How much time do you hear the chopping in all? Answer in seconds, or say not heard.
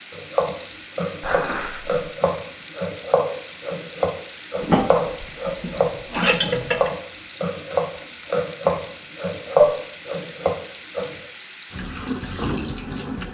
11 s.